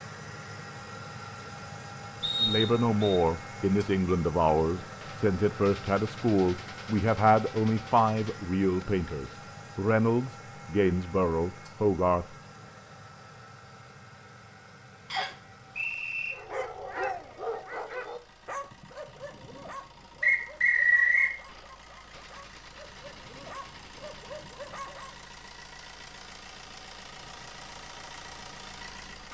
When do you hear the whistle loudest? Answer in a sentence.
The loudest moment of the whistle is at 21 seconds.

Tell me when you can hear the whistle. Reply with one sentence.
The whistle can be heard from 2.2 to 3.2 s, from 15.1 to 16.4 s and from 20.2 to 21.4 s.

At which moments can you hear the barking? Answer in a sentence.
You can hear the barking from 16.3 to 25.2 s.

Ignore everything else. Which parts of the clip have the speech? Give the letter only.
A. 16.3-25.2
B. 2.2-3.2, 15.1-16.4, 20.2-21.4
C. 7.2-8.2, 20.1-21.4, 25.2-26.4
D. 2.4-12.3
D.